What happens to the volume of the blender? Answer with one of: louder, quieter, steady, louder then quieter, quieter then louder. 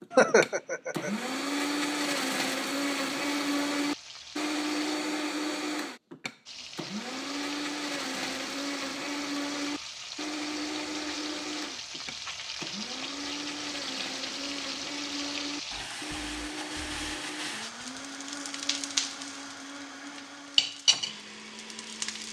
quieter.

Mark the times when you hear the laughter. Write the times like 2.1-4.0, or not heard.
0.1-1.1.